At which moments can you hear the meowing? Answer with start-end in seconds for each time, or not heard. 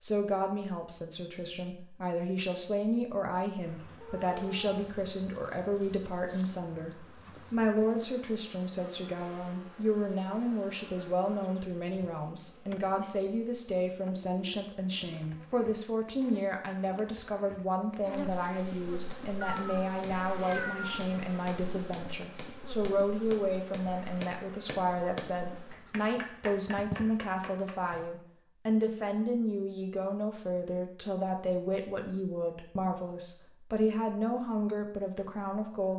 4.0-5.2, 19.4-21.1.